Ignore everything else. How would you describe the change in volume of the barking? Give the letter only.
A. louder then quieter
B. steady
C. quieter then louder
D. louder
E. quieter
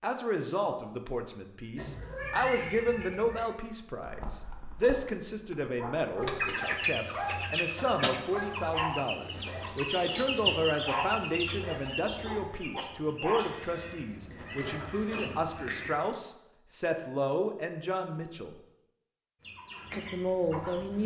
D.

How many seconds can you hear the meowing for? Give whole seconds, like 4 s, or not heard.
4 s.